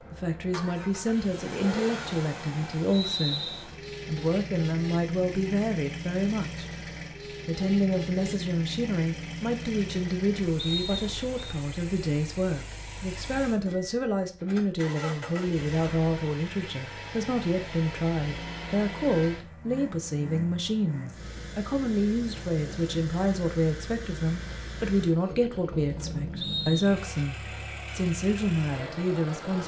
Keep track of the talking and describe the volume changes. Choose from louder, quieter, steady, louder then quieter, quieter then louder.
steady.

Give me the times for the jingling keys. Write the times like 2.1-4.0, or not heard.
not heard.